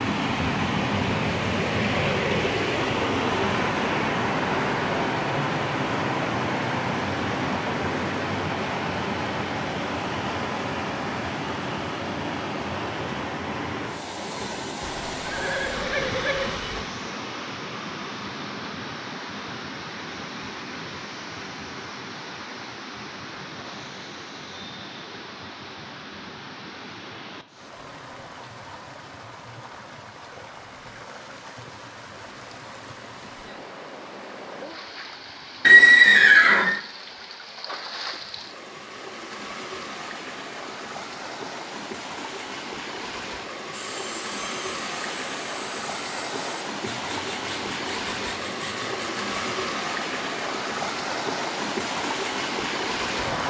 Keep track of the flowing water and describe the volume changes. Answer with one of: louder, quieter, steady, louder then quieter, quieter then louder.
quieter then louder.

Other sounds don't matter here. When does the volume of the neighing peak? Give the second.
36 s.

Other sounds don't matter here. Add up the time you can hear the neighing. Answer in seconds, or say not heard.
3 s.